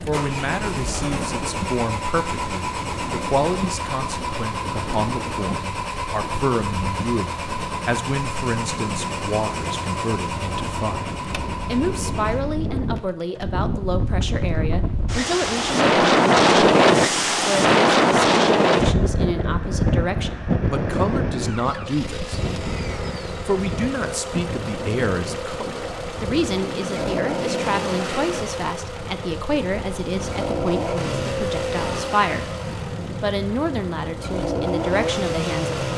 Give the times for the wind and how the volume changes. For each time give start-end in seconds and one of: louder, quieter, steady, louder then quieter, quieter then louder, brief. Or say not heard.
0.0-35.9 louder then quieter.